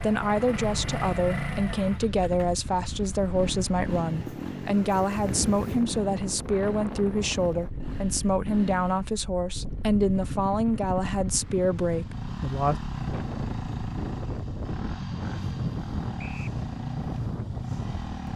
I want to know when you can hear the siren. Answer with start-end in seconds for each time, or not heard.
not heard.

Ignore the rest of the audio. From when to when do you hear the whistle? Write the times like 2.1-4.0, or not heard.
16.1-16.6.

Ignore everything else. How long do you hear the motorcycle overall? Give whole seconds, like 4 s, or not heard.
18 s.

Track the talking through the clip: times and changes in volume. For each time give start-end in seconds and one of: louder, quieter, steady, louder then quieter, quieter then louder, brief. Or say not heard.
0.0-12.8 steady.